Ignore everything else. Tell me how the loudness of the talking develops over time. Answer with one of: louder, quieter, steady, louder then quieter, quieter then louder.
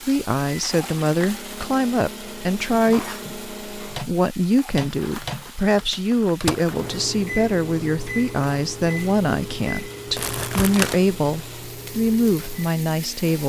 steady.